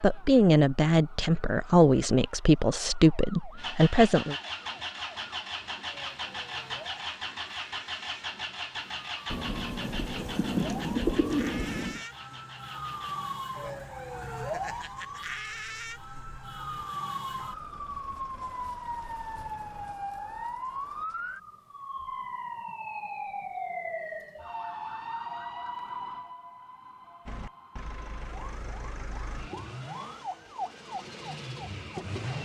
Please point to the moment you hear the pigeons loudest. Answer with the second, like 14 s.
11 s.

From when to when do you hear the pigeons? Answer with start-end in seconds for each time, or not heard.
9.3-12.0.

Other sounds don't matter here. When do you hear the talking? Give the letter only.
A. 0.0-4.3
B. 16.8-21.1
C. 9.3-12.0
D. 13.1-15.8
A.